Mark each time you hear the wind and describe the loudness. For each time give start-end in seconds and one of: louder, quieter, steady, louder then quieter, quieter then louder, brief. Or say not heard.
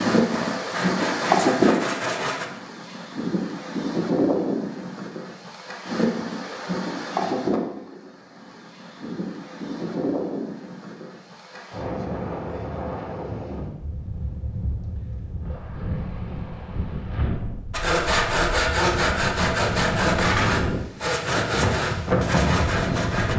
0.0-23.3 quieter then louder.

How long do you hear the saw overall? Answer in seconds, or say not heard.
8 s.